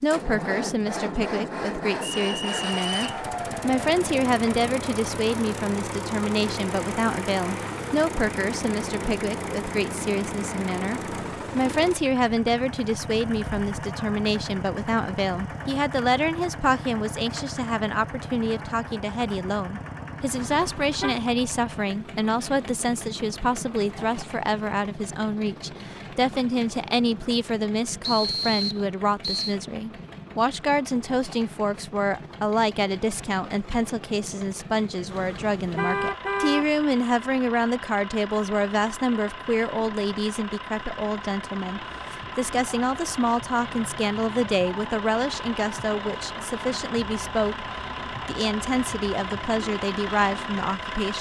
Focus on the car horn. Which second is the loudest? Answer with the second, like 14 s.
36 s.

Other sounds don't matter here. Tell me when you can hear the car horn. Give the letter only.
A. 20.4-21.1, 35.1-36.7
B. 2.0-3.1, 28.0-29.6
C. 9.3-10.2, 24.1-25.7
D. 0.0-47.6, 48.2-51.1
A.